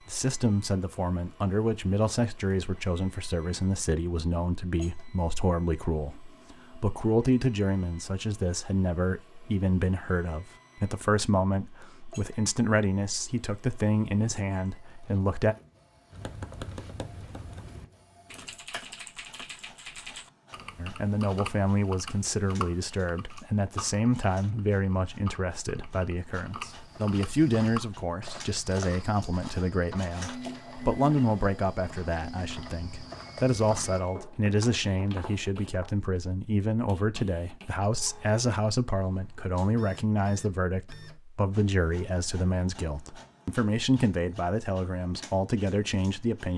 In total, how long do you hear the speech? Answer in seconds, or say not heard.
41 s.